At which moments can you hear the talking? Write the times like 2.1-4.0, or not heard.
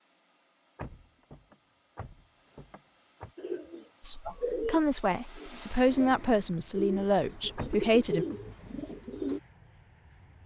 4.0-8.2.